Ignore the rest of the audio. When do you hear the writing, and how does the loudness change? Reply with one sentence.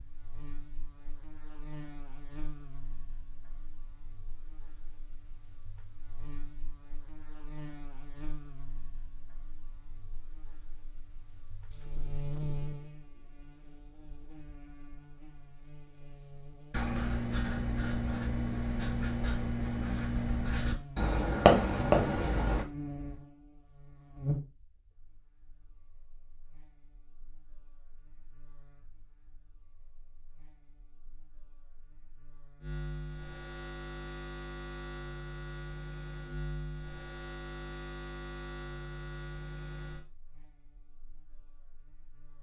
You can hear the writing from 16.7 to 22.6 s, getting louder.